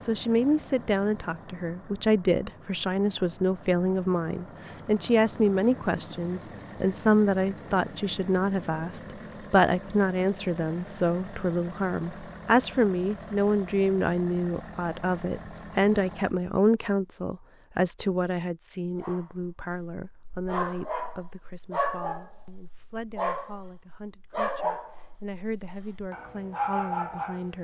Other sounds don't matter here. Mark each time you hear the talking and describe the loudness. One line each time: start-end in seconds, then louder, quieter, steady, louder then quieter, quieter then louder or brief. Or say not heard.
0.0-27.6 quieter.